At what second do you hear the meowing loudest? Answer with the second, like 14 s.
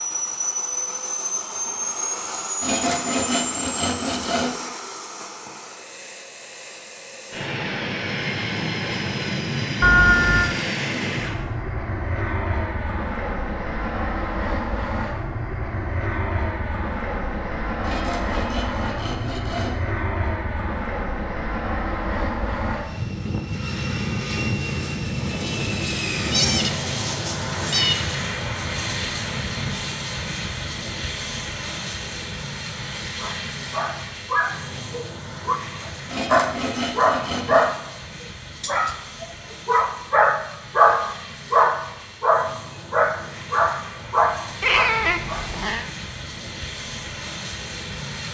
10 s.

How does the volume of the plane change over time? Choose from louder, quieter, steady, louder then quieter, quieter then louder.
quieter.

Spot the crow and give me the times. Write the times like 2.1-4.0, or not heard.
not heard.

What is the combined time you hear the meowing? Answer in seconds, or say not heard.
4 s.